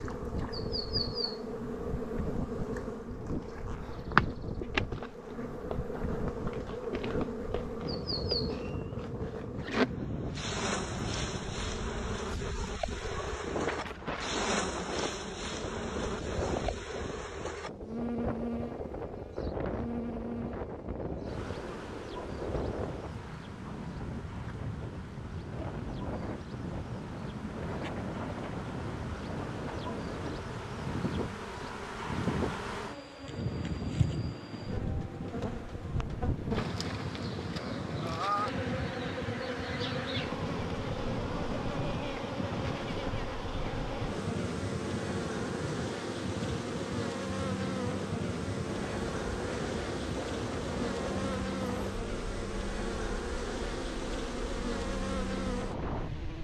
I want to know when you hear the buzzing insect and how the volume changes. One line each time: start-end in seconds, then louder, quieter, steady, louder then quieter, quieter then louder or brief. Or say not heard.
0.0-56.4 quieter then louder.